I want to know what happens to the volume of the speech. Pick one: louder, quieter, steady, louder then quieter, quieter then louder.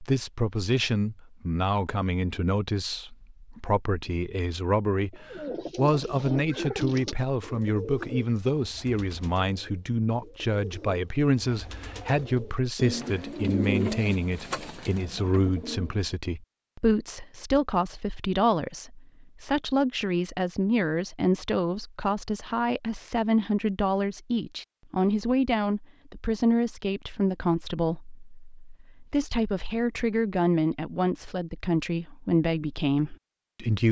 steady.